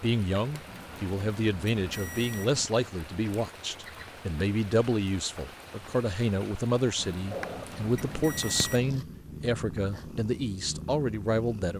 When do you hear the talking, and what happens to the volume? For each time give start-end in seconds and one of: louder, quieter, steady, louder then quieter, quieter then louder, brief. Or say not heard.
0.0-11.7 steady.